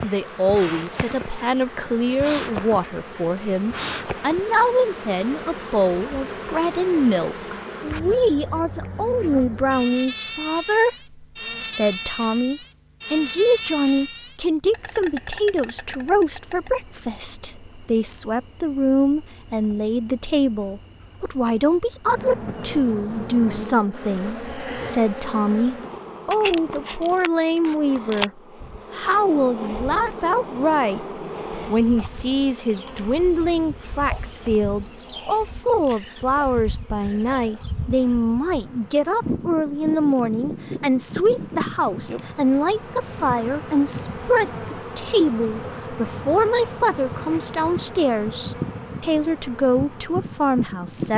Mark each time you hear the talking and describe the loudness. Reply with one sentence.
The talking can be heard from 0.0 to 31.1 s, at a steady volume; and from 31.6 to 51.1 s, at a steady volume.